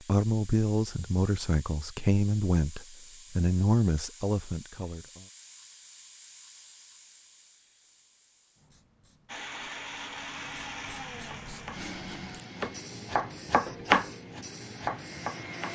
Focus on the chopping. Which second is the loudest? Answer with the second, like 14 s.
14 s.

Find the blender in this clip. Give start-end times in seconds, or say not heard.
9.2-15.7.